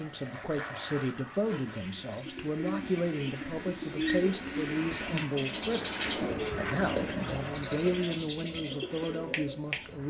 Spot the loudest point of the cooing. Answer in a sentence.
The volume of the cooing peaks at 4 seconds.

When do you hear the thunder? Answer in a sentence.
You can hear the thunder from 5.0 to 7.4 s.